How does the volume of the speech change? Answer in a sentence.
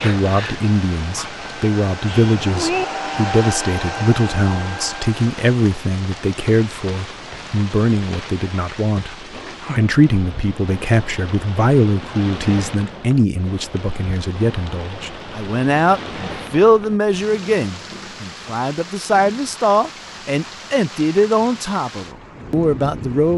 The loudness of the speech stays about the same.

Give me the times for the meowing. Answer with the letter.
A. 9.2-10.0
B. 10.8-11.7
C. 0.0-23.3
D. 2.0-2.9
D.